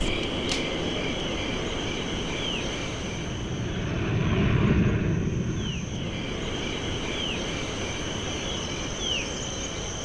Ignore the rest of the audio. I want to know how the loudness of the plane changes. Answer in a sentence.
The loudness of the plane goes up, then down.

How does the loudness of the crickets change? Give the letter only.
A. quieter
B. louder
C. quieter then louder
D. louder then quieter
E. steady
C.